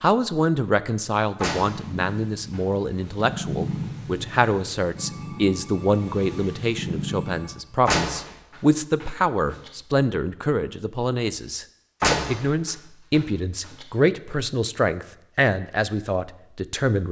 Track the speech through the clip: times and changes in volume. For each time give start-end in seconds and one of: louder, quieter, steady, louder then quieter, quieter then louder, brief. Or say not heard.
0.0-17.0 steady.